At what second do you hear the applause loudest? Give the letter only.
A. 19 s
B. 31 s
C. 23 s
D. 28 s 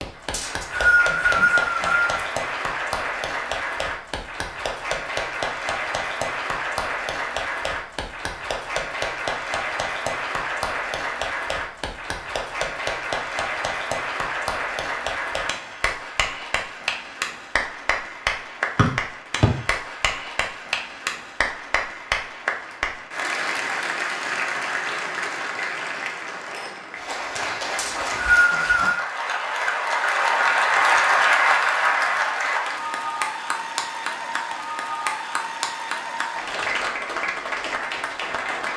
B.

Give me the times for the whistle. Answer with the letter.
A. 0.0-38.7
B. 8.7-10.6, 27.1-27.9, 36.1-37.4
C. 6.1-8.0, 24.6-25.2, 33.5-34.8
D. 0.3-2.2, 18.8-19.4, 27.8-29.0
D.